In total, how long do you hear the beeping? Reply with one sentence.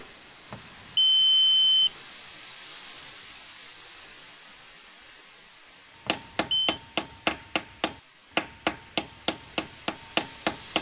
The beeping can be heard for 2 seconds in total.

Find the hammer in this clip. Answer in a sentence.
You can hear the hammer from 6.0 to 10.7 s.